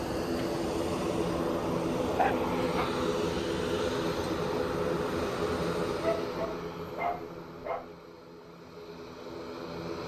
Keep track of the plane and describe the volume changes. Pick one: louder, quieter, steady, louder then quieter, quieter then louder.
quieter.